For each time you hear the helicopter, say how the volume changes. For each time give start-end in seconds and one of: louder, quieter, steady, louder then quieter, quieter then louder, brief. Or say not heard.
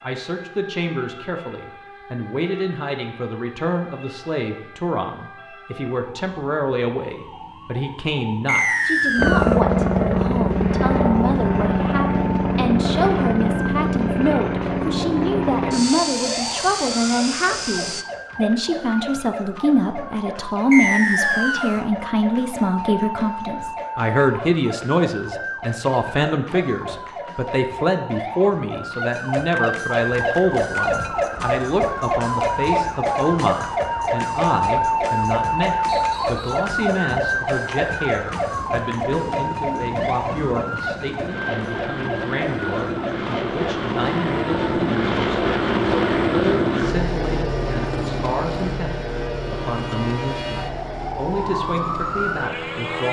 9.2-18.1 quieter
30.3-53.0 louder then quieter.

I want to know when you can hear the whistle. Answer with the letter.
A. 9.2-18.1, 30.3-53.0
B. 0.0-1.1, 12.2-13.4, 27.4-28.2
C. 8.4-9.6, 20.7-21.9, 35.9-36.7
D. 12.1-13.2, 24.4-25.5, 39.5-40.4
C.